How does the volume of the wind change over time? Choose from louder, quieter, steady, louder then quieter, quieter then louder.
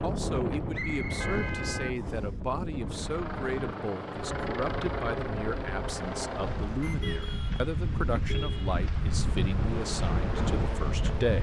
quieter then louder.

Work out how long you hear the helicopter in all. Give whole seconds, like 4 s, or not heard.
6 s.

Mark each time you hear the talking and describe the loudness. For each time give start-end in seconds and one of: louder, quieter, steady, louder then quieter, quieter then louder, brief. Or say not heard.
0.0-11.3 steady.